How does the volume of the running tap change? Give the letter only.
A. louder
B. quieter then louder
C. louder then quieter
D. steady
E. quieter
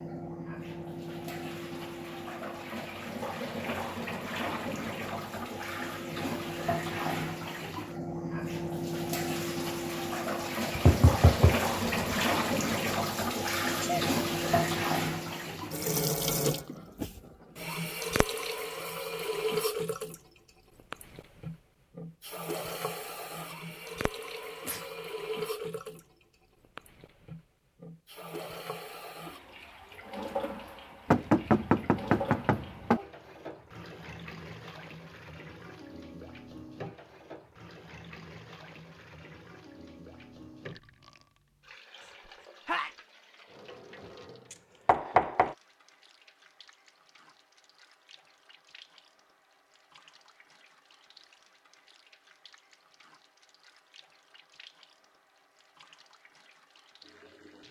E.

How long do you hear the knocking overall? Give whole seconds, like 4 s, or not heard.
4 s.